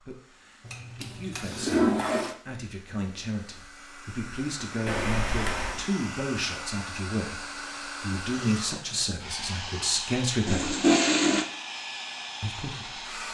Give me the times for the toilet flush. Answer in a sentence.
You can hear the toilet flush from 0.7 to 2.4 s, from 4.8 to 5.8 s and from 10.4 to 11.4 s.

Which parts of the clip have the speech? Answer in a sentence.
The speech can be heard from 0.0 to 10.8 s and from 12.4 to 12.9 s.